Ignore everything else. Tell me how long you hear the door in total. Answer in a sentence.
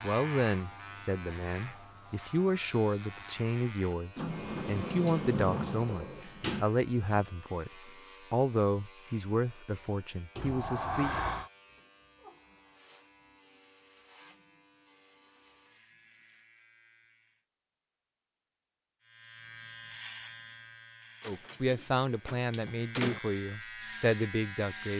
You can hear the door for 6 seconds altogether.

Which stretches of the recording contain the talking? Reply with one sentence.
You can hear the talking from 0.0 to 11.1 s and from 21.2 to 24.9 s.